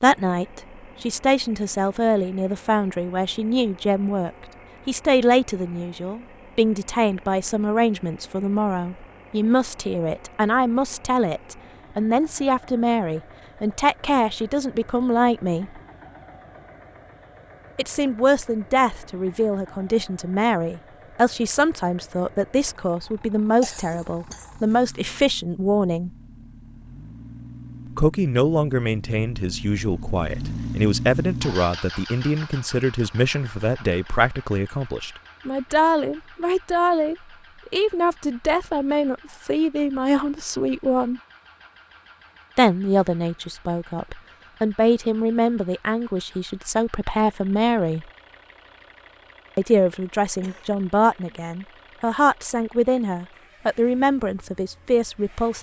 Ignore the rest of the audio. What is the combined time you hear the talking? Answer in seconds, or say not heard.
49 s.